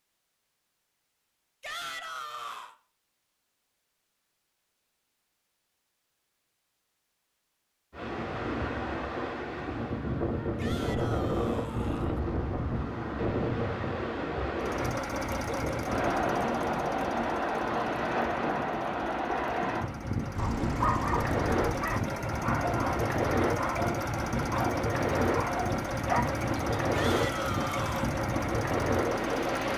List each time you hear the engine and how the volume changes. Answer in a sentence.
The engine can be heard from 14.6 to 29.7 s, getting quieter then louder.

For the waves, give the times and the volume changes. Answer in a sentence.
The waves can be heard from 7.9 to 29.7 s, at a steady volume.